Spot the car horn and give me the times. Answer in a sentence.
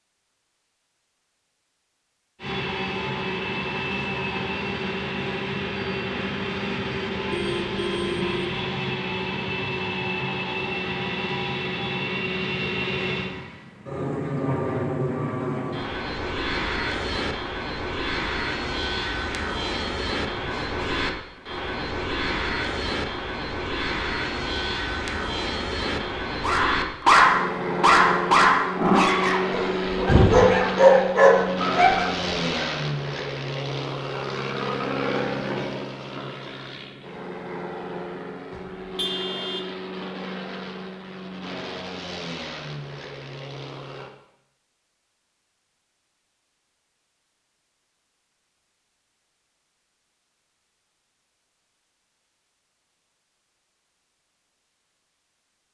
You can hear the car horn from 7.3 to 8.3 s, from 20.3 to 21.1 s and from 38.5 to 39.8 s.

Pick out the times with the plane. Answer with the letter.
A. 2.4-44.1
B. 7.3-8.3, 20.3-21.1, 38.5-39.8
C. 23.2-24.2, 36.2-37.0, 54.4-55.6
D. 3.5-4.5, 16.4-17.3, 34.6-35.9
A.